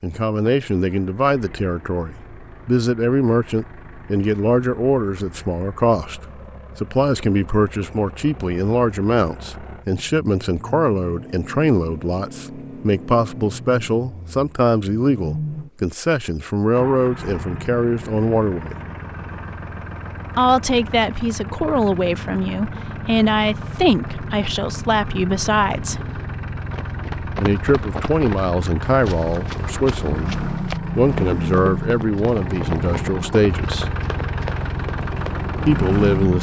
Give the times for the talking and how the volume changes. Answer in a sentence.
The talking can be heard from 0.0 to 18.8 s, at a steady volume; from 20.4 to 26.0 s, at a steady volume; from 27.4 to 33.9 s, at a steady volume; and briefly from 35.6 to 36.3 s.